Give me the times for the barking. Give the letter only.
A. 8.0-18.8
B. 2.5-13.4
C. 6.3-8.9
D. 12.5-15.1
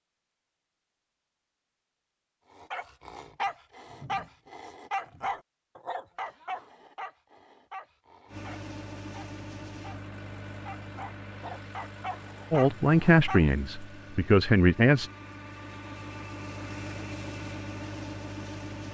B.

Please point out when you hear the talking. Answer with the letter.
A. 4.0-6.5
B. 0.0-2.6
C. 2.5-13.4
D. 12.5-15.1
D.